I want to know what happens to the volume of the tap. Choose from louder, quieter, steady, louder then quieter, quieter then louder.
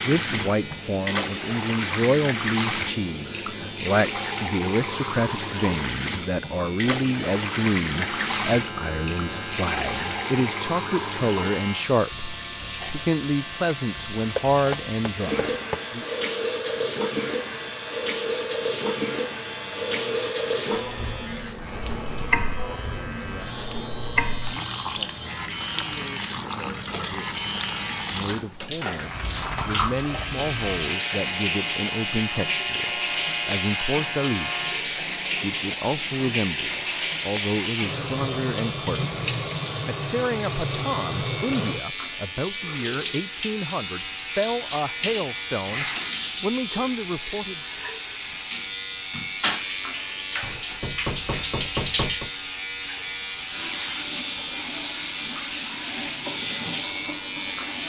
steady.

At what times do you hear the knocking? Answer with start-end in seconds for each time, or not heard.
14.3-15.8, 50.4-52.3.